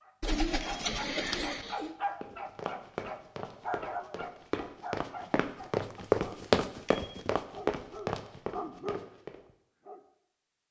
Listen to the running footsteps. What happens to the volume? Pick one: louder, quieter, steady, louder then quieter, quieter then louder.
louder then quieter.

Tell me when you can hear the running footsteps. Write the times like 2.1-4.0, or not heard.
2.2-9.4.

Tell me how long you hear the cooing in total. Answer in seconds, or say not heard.
2 s.